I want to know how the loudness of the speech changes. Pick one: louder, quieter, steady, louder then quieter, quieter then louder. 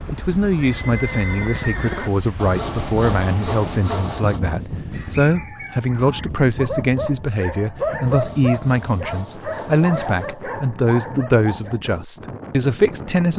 steady.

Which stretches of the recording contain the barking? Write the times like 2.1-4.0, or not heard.
4.9-11.8.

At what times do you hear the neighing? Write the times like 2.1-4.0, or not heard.
0.5-2.1.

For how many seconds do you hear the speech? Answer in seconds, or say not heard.
13 s.